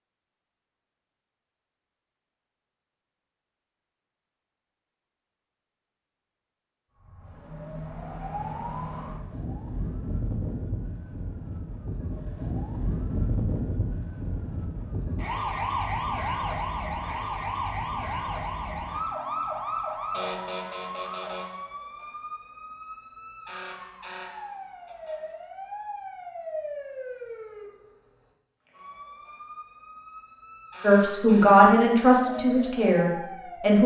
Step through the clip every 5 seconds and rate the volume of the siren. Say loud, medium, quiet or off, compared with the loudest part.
off, medium, loud, loud, medium, medium, medium.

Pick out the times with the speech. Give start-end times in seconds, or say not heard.
30.8-33.8.